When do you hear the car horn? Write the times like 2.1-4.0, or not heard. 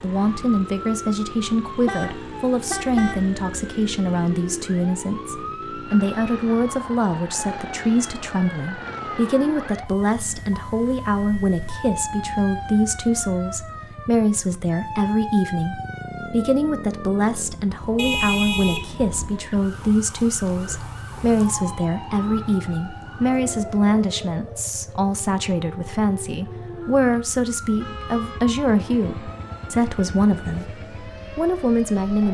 1.9-3.2, 17.9-19.4, 27.8-28.4.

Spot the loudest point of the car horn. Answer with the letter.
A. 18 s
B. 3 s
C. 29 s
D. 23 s
A.